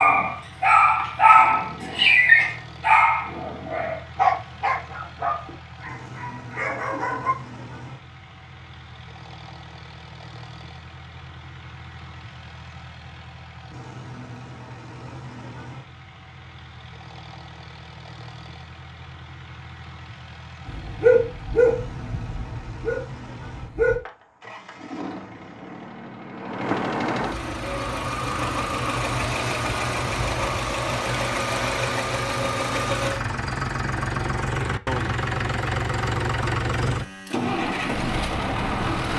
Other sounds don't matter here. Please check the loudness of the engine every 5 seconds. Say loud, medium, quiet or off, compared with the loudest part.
quiet, quiet, quiet, quiet, quiet, loud, loud, loud.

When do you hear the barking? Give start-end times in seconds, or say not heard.
0.0-7.3, 20.6-24.0.